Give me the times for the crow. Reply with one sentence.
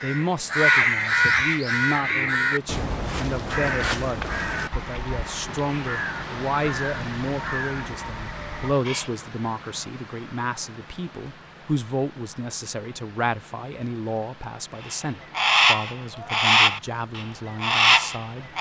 The crow can be heard from 0.0 to 9.1 s and from 14.8 to 18.5 s.